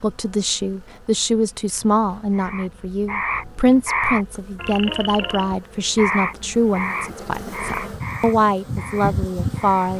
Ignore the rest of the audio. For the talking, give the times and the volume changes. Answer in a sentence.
You can hear the talking from 0.0 to 9.9 s, at a steady volume.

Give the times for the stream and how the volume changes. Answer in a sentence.
The stream can't be heard in this clip.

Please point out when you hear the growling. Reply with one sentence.
The growling can't be heard in this clip.